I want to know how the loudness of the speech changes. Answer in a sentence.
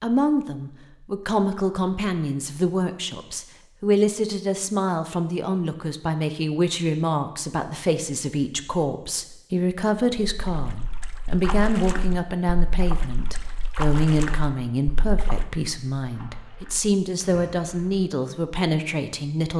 The loudness of the speech stays about the same.